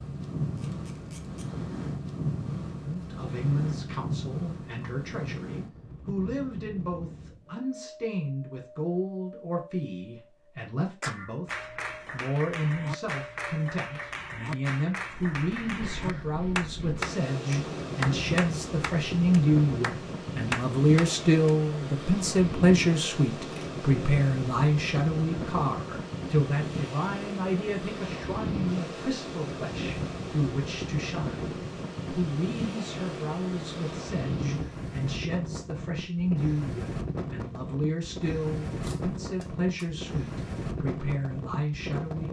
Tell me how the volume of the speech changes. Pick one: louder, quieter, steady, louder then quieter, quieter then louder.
louder then quieter.